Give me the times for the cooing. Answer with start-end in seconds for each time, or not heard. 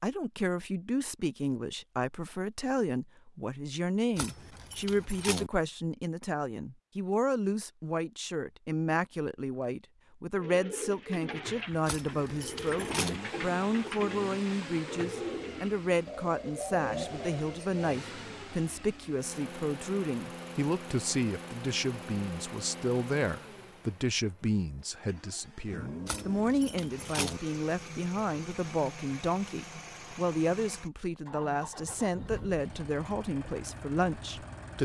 10.3-17.8.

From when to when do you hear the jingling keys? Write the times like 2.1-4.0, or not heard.
4.2-5.5, 11.8-13.2, 26.1-27.4.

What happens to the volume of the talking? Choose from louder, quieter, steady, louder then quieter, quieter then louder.
steady.